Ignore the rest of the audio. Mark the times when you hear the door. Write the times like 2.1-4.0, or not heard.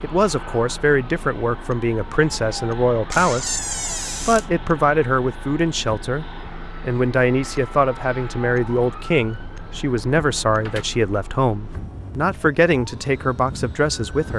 3.1-4.5, 10.2-10.8.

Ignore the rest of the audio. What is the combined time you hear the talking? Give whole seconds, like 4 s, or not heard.
14 s.